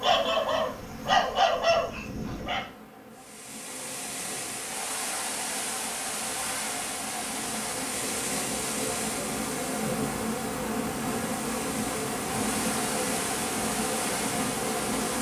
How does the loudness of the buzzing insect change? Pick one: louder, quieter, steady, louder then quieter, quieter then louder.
louder.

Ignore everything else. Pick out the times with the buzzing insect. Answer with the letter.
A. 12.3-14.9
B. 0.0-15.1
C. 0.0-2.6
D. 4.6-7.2
B.